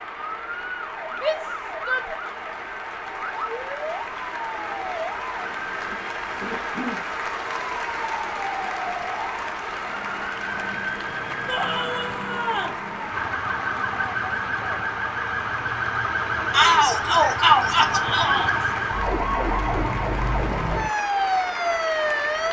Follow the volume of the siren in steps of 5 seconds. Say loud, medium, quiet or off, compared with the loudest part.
medium, medium, medium, loud, loud.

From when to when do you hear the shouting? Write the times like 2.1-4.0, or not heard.
1.1-2.1, 11.4-12.8, 16.5-18.5.